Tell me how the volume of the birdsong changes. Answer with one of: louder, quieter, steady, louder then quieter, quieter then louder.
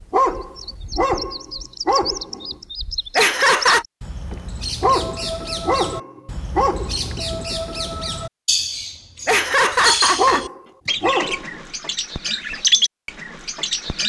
louder.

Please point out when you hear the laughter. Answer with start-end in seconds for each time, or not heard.
3.1-3.9, 9.2-10.9.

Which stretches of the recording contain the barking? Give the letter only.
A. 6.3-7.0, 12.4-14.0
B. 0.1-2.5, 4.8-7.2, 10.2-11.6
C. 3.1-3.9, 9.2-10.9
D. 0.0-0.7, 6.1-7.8
B.